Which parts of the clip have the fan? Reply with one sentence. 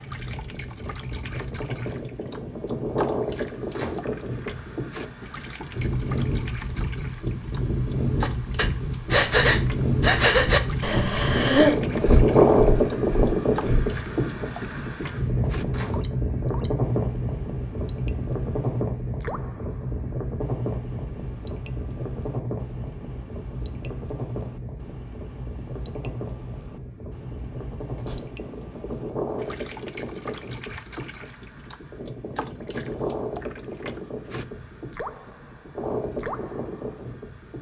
The fan can be heard from 0.0 to 37.5 s.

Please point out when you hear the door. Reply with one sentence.
You can hear the door from 3.7 to 4.2 s, from 15.7 to 16.1 s and from 27.8 to 28.2 s.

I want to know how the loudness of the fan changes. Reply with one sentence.
The loudness of the fan goes up, then down.